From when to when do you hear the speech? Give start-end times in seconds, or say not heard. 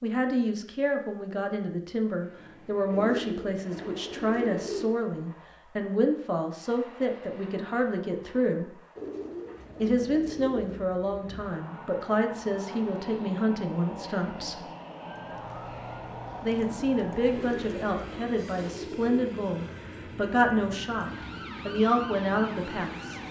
0.0-8.8, 9.8-14.7, 16.4-23.2.